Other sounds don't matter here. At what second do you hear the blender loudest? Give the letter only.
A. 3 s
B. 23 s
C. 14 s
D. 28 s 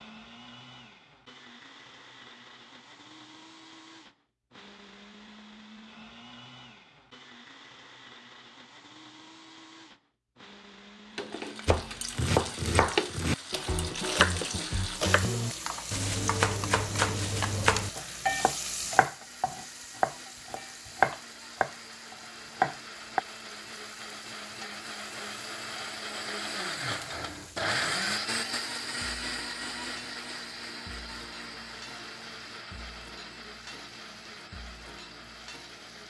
D.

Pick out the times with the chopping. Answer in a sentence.
The chopping can be heard from 11.7 to 23.2 s.